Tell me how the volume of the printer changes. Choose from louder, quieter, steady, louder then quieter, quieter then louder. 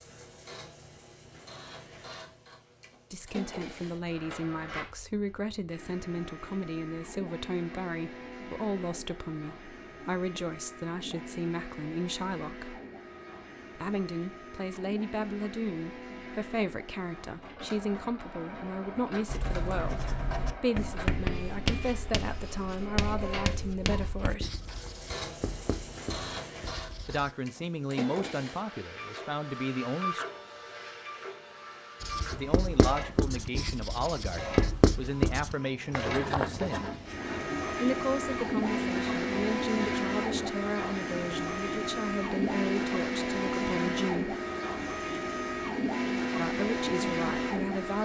louder.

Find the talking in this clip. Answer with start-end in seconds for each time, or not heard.
3.1-12.8, 13.8-24.6, 27.1-30.2, 32.3-36.9, 37.8-44.4, 46.4-48.0.